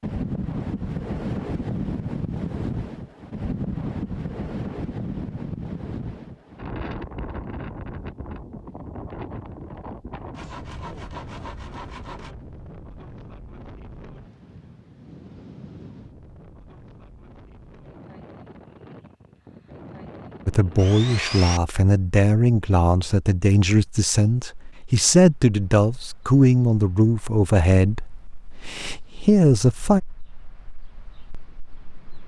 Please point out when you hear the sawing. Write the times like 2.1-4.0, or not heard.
10.3-12.3, 20.8-21.6.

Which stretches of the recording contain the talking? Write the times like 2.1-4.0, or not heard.
20.4-30.0.